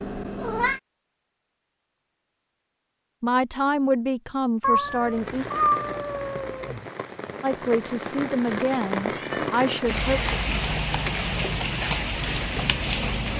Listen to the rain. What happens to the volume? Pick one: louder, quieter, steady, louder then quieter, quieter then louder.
louder.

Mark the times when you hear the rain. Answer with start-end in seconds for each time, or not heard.
5.0-13.3.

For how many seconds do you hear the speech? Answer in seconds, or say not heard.
5 s.